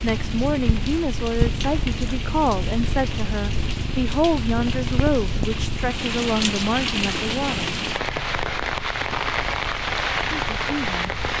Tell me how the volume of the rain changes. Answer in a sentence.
The volume of the rain goes up.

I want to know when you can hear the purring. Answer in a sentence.
You can hear the purring from 0.0 to 11.3 s.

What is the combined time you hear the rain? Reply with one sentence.
You can hear the rain for 11 seconds altogether.